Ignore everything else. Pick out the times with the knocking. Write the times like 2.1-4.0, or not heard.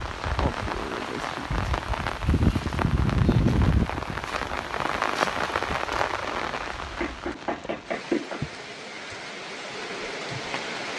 7.0-8.4.